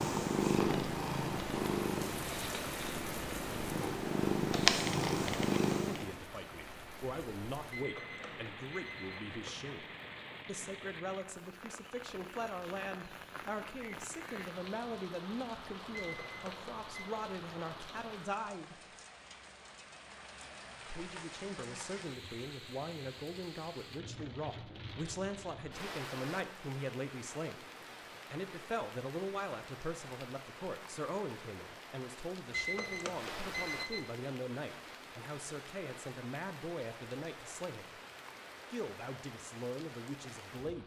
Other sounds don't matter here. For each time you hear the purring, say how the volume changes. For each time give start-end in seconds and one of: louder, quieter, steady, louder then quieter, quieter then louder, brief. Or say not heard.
0.0-6.2 quieter then louder.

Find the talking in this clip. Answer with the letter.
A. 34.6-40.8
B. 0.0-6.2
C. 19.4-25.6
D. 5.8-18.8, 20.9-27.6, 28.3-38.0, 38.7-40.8
D.